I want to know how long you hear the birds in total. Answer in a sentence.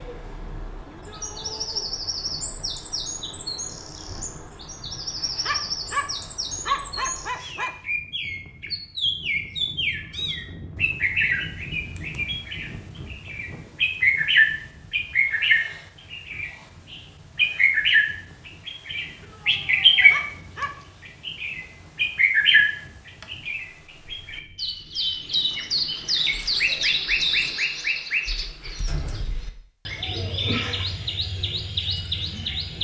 The birds can be heard for 33 seconds in total.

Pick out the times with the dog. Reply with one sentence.
You can hear the dog from 4.8 to 7.8 s and from 19.5 to 20.9 s.